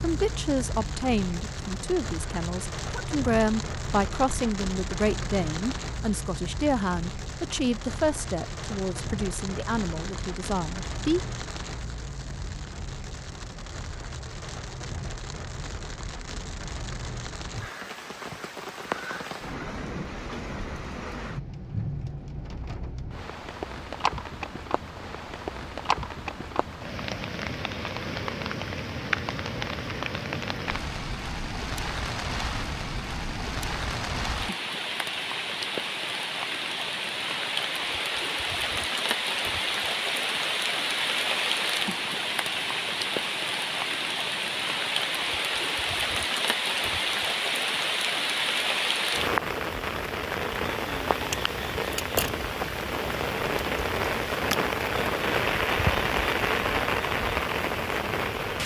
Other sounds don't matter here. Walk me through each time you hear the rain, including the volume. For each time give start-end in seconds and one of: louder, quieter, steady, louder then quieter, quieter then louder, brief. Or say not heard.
0.0-58.6 louder.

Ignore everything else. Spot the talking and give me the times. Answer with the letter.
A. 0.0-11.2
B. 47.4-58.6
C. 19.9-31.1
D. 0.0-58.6
A.